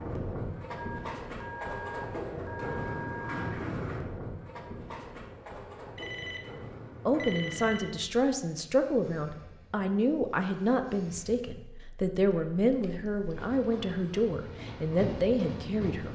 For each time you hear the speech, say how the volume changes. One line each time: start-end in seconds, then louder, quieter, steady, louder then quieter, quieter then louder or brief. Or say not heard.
7.0-16.0 steady.